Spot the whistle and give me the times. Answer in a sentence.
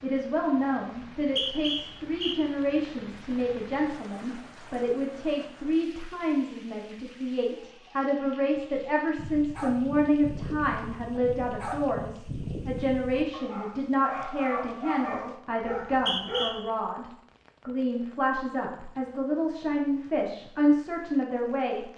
The whistle can be heard from 1.1 to 2.4 s and from 15.7 to 16.6 s.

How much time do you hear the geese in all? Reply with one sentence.
You can't hear the geese here.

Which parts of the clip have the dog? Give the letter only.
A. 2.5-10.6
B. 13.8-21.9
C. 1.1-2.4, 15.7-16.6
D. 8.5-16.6
D.